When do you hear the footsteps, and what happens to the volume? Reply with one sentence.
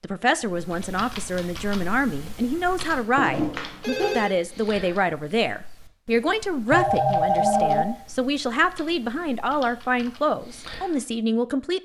The footsteps can't be heard in this clip.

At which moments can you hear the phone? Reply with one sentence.
The phone can be heard from 3.1 to 4.3 s and from 6.7 to 7.8 s.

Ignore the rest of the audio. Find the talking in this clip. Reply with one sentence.
You can hear the talking from 0.0 to 11.7 s.